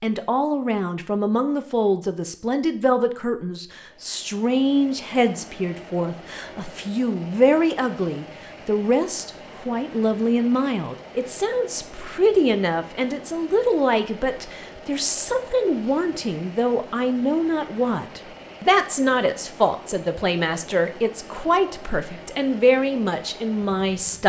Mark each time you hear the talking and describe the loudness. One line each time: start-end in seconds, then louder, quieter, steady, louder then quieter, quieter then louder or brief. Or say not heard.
0.0-24.2 steady.